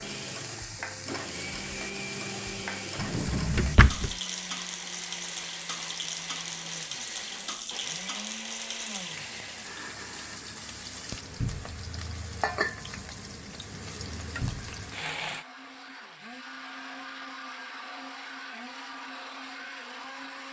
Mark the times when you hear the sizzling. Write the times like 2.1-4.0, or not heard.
0.0-15.4.